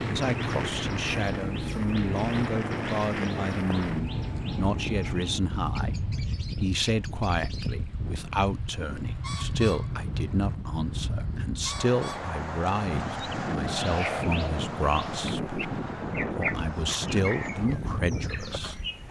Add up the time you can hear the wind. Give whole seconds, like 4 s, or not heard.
19 s.